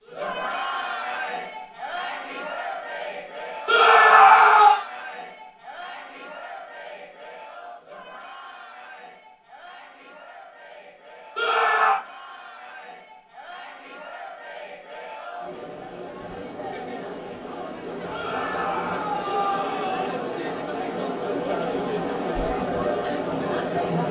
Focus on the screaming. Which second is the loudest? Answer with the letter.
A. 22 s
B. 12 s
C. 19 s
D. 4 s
D.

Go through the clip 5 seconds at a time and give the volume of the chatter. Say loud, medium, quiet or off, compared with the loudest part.
medium, quiet, quiet, medium, loud.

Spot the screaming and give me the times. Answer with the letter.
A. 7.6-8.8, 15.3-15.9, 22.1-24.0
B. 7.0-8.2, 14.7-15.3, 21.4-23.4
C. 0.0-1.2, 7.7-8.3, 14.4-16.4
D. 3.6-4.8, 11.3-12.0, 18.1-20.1
D.